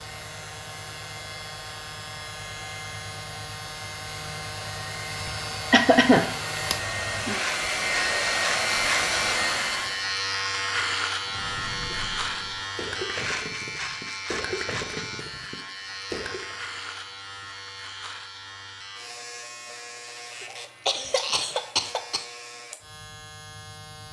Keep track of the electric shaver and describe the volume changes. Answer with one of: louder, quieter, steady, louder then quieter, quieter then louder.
louder then quieter.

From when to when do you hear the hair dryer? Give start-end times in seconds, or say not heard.
0.0-10.1.